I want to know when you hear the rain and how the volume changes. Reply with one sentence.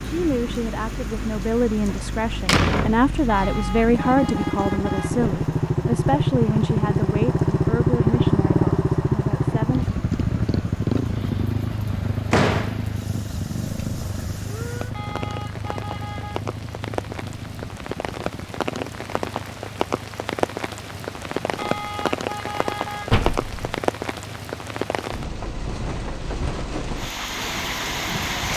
The rain can be heard from 0.0 to 28.5 s, getting quieter then louder.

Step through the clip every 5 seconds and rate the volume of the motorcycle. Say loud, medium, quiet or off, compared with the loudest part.
medium, loud, medium, quiet, quiet, quiet.